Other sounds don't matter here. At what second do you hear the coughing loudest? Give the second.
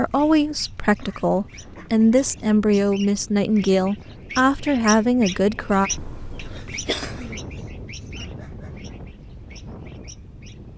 7 s.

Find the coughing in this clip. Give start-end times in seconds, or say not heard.
1.0-1.9, 5.9-7.4.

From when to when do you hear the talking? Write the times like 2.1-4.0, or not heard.
0.0-5.9.